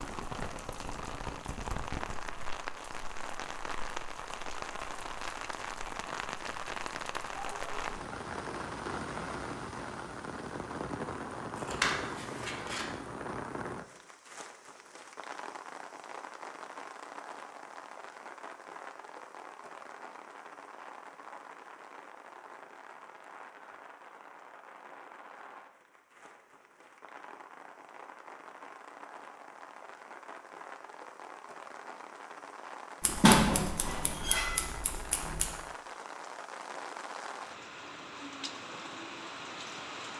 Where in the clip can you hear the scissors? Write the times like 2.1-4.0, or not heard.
11.6-12.8, 33.0-35.5.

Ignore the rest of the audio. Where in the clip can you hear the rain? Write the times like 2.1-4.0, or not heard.
0.0-40.1.